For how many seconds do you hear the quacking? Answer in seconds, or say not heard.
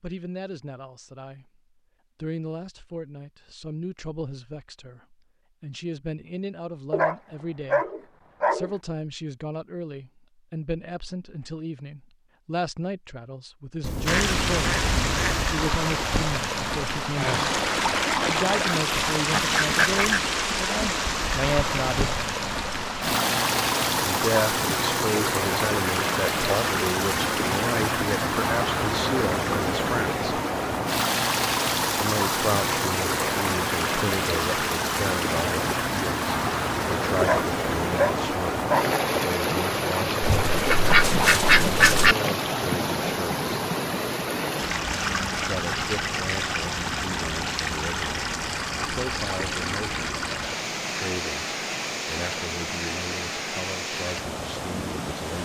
5 s.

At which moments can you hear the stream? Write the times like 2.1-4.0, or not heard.
14.1-55.4.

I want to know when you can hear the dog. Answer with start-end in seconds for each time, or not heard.
6.9-8.8, 37.2-39.0.